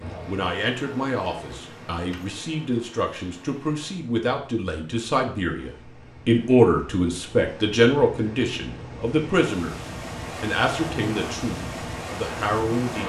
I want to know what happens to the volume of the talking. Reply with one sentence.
The loudness of the talking goes up, then down.